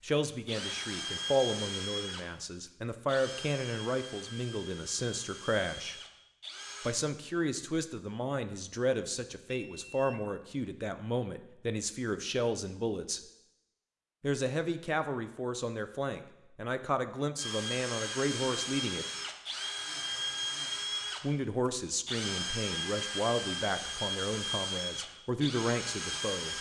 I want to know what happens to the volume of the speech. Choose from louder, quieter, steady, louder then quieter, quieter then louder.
steady.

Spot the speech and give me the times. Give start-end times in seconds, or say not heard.
0.0-6.0, 6.8-13.2, 14.2-19.1, 21.2-26.5.